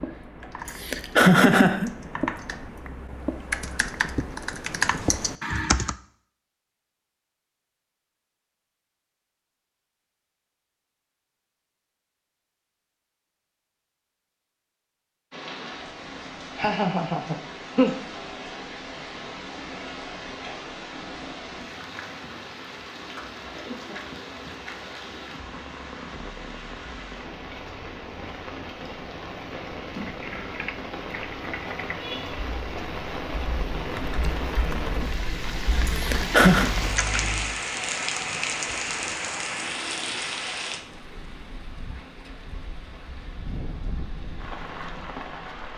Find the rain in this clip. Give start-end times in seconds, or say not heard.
15.3-45.7.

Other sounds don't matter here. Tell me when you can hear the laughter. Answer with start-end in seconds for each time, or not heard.
0.7-1.9, 16.6-17.9, 36.0-36.7.